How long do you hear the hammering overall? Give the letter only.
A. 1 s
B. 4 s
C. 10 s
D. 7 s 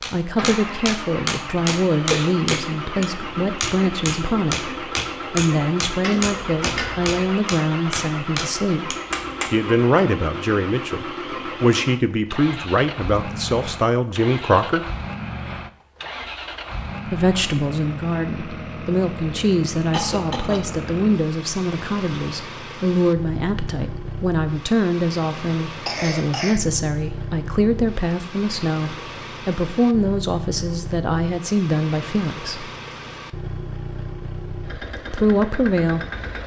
C.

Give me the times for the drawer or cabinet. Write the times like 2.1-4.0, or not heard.
6.0-7.2.